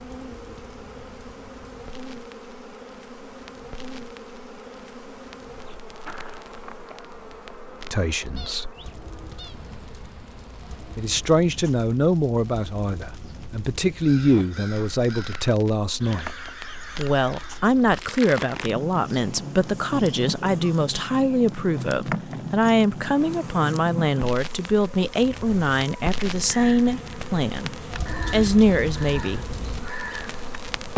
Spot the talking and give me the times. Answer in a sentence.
The talking can be heard from 7.9 to 8.7 s, from 10.9 to 16.3 s and from 16.9 to 29.4 s.